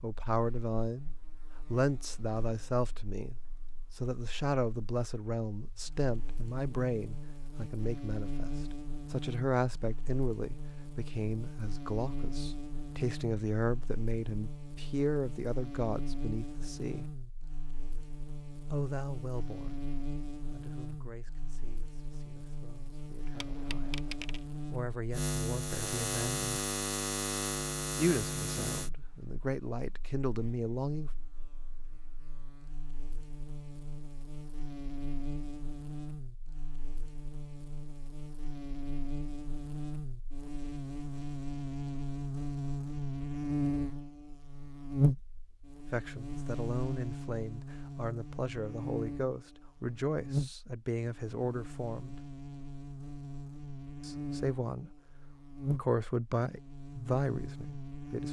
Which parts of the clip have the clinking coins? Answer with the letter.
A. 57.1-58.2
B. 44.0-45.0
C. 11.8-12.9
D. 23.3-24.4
D.